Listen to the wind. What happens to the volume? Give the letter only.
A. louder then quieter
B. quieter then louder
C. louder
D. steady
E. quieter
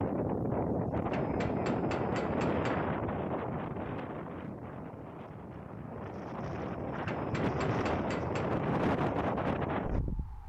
B.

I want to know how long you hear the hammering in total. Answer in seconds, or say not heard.
3 s.